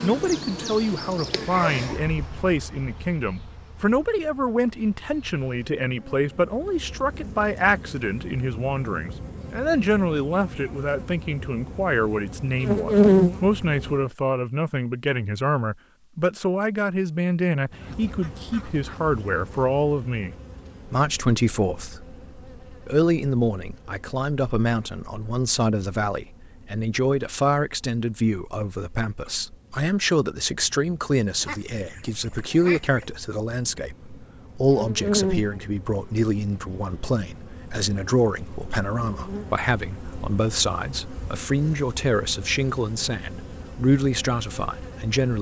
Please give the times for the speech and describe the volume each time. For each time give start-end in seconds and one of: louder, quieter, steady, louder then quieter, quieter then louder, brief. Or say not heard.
0.0-45.3 steady.